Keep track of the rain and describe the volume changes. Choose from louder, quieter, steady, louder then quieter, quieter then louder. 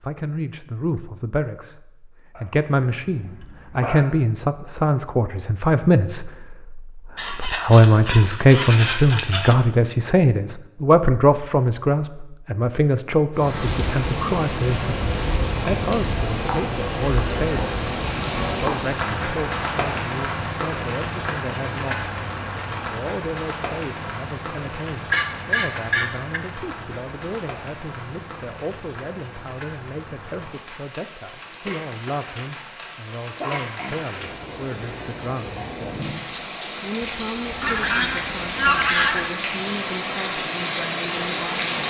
quieter then louder.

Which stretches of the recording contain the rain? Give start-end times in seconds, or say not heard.
13.3-41.8.